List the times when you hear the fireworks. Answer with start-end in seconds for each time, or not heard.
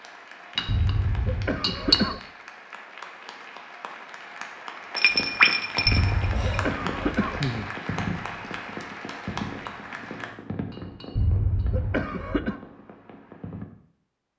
5.1-13.7.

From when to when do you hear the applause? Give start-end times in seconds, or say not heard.
0.0-10.3.